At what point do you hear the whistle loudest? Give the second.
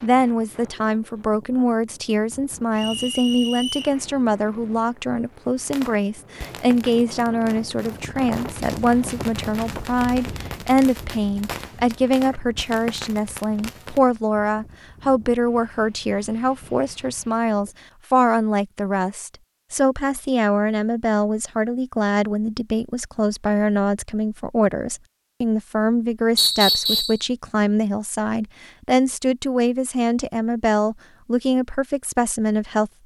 27 s.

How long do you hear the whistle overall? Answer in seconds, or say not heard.
2 s.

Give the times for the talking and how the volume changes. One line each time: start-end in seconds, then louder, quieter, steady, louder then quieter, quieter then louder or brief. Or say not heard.
0.0-32.9 steady.